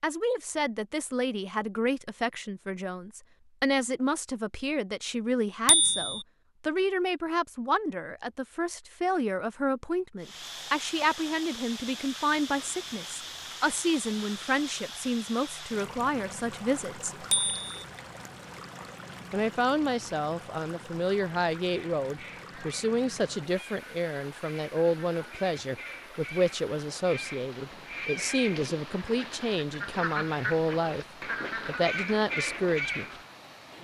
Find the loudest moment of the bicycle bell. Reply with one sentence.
The loudest moment of the bicycle bell is at 6 seconds.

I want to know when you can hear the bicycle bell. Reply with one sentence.
You can hear the bicycle bell from 5.7 to 6.2 s and from 17.3 to 17.8 s.